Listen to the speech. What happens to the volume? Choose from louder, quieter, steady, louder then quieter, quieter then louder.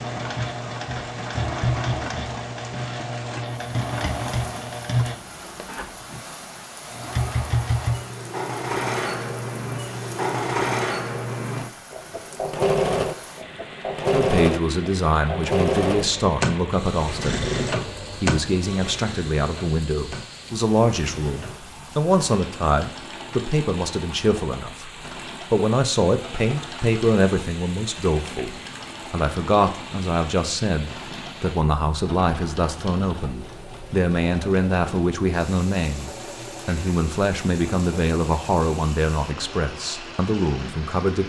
steady.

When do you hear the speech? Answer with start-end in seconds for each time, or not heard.
14.1-24.9, 25.5-41.2.